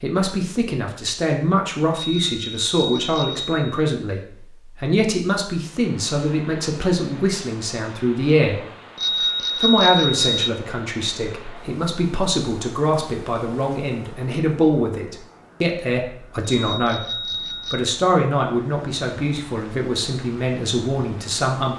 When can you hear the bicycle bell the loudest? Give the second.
10 s.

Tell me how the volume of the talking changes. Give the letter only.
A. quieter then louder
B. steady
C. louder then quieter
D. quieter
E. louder
B.